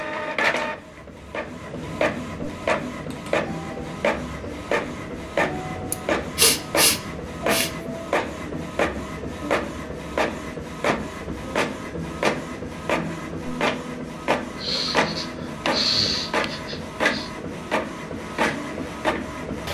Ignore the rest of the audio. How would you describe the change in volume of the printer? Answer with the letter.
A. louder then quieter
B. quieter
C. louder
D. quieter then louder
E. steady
E.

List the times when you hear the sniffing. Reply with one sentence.
You can hear the sniffing from 5.9 to 7.8 s and from 14.6 to 17.3 s.